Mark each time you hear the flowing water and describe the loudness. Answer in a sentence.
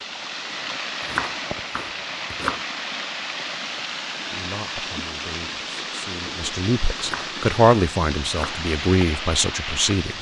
You can hear the flowing water from 0.0 to 10.1 s, at a steady volume.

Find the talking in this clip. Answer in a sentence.
You can hear the talking from 4.3 to 10.1 s.